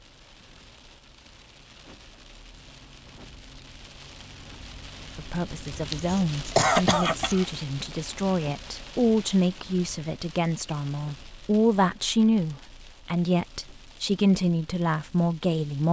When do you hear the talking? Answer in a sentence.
You can hear the talking from 5.2 to 15.8 s.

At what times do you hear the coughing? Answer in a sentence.
The coughing can be heard from 5.7 to 7.5 s.